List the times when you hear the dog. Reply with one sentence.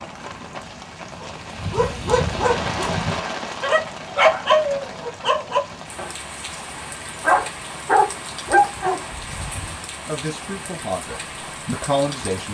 You can hear the dog from 1.2 to 9.0 s.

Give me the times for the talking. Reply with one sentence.
The talking can be heard from 9.6 to 12.4 s.